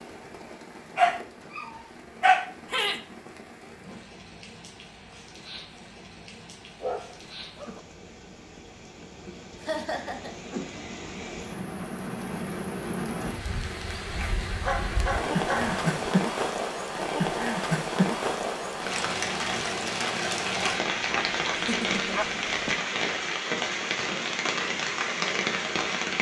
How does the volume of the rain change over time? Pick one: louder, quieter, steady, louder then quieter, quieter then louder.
louder.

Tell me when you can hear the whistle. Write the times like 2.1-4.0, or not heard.
not heard.